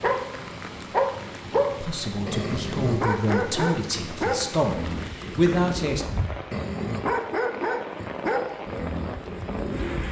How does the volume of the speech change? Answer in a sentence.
The volume of the speech goes up.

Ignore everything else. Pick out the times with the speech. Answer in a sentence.
The speech can be heard from 1.8 to 6.0 s.